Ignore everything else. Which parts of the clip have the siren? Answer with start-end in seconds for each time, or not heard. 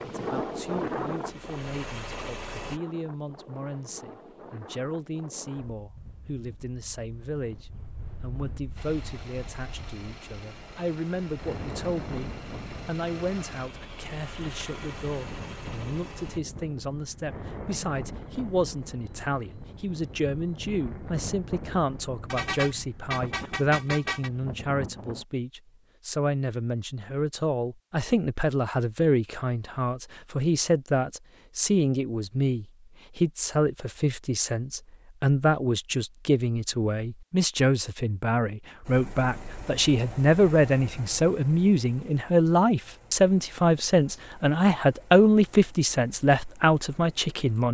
not heard.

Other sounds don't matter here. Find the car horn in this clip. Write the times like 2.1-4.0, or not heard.
22.3-24.3.